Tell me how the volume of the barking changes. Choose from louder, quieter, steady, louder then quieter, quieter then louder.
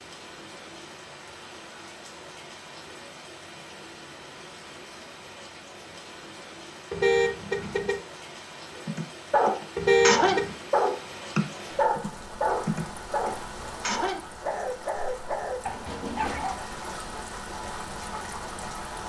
quieter.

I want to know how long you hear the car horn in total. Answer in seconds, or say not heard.
2 s.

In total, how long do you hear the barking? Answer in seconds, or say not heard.
8 s.